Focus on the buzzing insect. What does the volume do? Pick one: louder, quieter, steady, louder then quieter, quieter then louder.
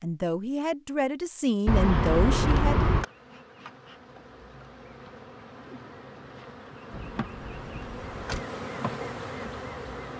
louder.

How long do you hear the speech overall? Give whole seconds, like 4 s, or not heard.
3 s.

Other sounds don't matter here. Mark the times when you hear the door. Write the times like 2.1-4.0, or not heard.
1.6-3.0, 6.9-8.4.